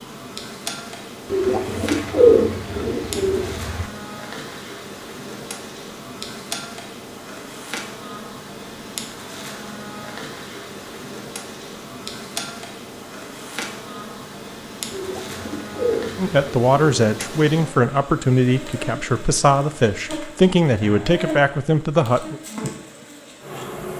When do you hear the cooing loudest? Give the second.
2 s.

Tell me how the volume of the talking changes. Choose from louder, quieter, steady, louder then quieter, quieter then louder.
steady.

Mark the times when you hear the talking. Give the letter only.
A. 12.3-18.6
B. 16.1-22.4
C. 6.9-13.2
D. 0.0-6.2
B.